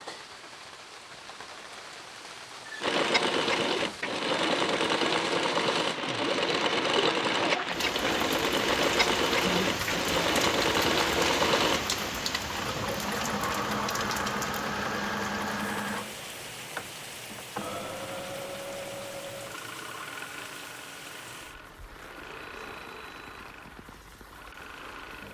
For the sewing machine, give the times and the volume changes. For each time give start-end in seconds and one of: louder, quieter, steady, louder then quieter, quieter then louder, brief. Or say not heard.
2.8-25.2 quieter.